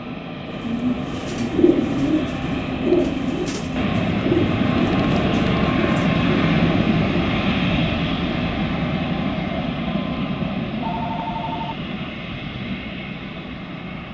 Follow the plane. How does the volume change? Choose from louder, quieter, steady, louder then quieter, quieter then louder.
louder then quieter.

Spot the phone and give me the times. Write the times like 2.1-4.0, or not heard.
10.8-11.8.